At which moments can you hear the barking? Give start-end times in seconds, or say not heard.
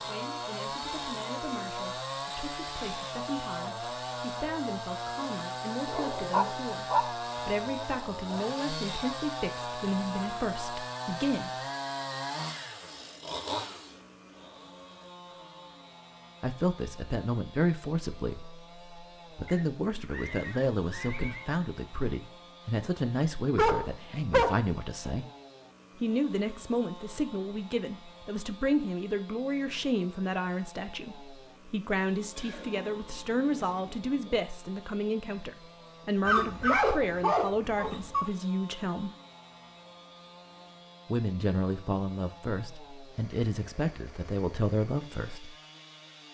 5.8-7.1, 23.6-25.1, 36.2-38.3.